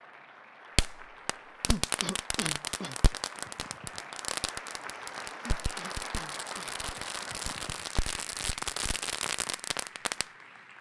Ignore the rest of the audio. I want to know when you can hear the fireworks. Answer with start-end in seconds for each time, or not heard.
0.8-10.2.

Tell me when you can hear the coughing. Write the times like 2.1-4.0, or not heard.
1.6-3.0, 5.4-6.8.